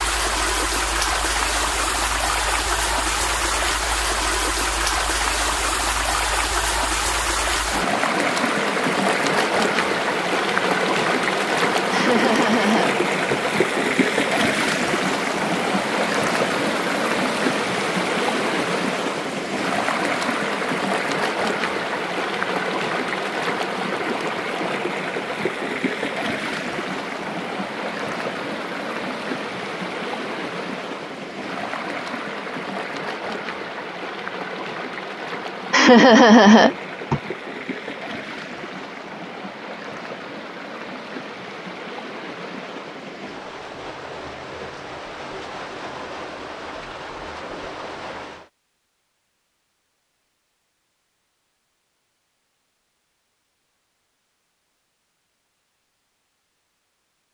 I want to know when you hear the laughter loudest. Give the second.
36 s.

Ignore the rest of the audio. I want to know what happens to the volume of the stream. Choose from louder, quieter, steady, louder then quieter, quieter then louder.
quieter.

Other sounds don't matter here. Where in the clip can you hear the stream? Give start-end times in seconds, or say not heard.
0.0-48.5.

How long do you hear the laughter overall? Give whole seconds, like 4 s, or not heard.
3 s.